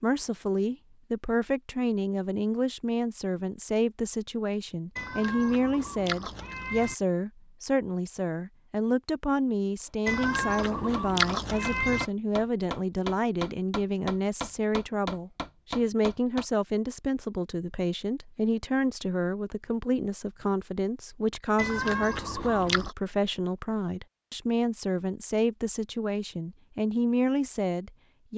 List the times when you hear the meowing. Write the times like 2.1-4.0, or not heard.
5.0-7.0, 10.1-12.1, 21.6-22.9.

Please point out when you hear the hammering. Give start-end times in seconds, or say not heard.
9.8-16.4.